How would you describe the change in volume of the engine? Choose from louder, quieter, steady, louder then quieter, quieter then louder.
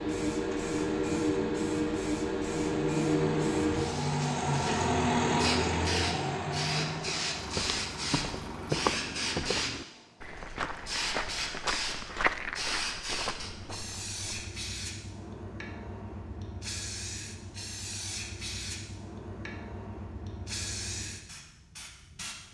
louder then quieter.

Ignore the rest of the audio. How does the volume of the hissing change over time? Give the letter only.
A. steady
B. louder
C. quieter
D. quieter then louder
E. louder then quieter
C.